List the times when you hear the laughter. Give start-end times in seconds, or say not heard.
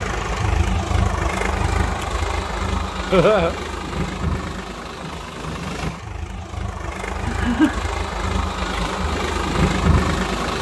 3.1-3.5, 7.2-7.8.